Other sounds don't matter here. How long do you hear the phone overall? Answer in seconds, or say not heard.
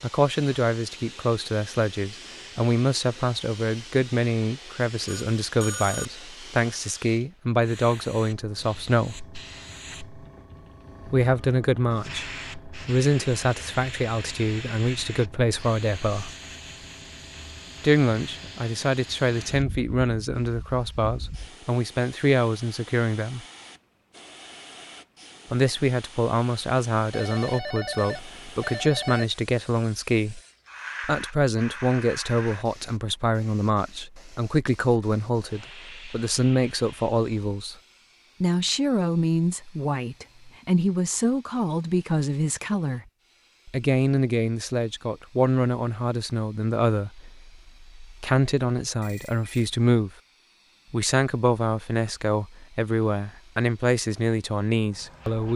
4 s.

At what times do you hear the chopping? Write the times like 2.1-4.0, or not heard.
not heard.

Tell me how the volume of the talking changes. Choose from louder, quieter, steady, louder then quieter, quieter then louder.
steady.